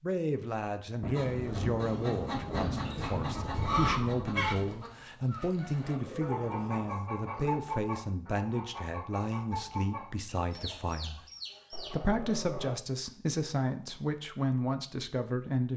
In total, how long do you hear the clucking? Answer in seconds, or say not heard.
11 s.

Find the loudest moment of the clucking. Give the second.
4 s.